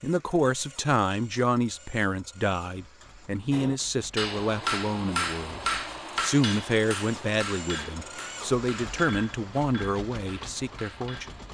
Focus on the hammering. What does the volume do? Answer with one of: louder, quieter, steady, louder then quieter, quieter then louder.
quieter.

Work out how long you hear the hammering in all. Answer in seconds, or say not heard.
8 s.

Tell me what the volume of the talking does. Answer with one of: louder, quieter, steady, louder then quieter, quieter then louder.
steady.